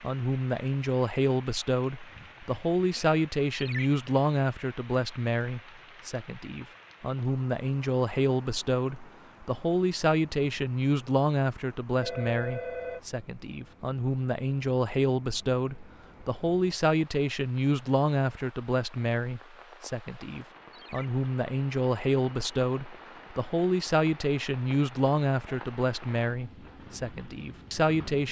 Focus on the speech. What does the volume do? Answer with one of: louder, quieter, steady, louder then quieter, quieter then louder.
steady.